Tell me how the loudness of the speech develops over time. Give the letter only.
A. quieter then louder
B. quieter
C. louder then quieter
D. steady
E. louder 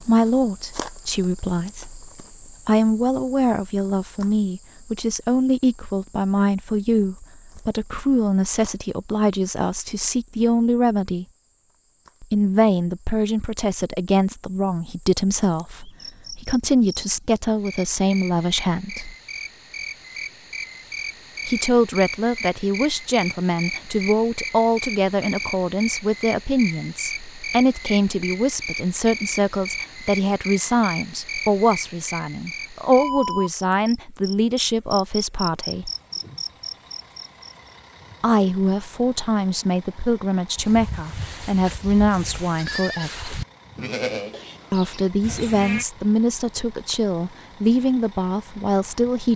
D.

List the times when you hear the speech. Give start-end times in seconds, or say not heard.
0.0-11.2, 12.2-19.1, 21.4-35.9, 38.2-43.4, 44.7-49.3.